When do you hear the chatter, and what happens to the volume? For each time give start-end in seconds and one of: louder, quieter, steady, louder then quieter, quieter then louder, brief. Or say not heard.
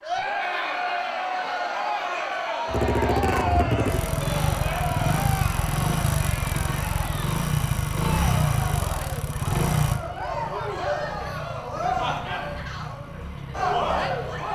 0.0-14.5 quieter then louder.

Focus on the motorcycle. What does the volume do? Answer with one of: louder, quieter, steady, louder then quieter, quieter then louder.
quieter.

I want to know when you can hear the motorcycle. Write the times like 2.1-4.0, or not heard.
2.6-14.5.